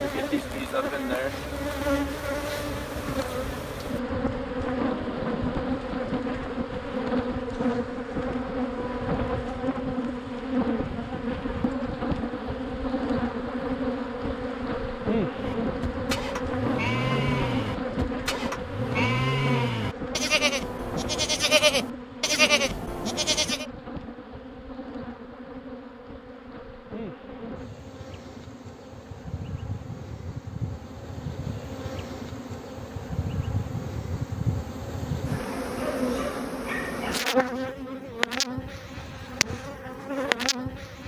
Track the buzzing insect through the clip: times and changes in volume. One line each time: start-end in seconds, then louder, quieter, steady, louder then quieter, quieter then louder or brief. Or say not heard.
0.0-41.0 quieter then louder.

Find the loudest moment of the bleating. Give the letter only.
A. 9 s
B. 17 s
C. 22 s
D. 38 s
C.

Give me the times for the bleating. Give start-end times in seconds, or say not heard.
15.3-23.6.